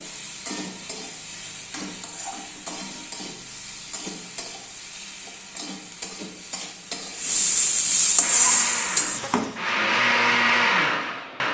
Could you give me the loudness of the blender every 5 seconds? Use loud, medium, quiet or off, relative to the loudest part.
off, medium, loud.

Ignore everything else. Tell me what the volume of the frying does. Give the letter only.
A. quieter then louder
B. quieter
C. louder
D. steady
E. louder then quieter
C.